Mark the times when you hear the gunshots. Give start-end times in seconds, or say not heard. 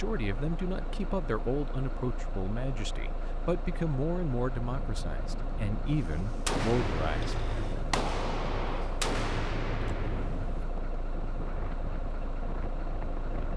6.5-10.7.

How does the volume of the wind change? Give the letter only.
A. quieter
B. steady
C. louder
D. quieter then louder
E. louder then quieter
B.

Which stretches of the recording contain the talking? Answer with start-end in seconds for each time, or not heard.
0.0-7.5.